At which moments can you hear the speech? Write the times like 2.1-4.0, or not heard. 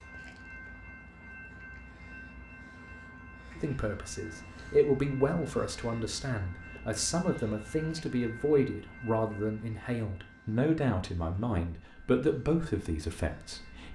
3.5-13.9.